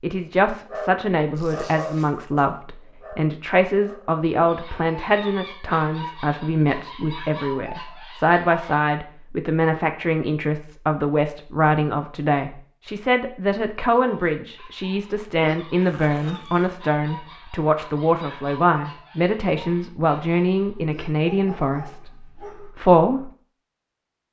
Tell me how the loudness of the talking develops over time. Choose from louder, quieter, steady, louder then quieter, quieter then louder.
steady.